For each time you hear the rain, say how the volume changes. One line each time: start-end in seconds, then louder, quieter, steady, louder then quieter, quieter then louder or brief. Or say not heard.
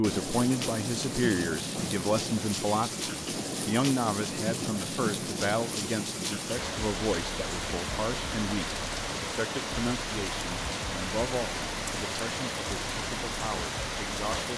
0.0-14.5 steady.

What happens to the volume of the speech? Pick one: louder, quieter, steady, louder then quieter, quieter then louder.
quieter.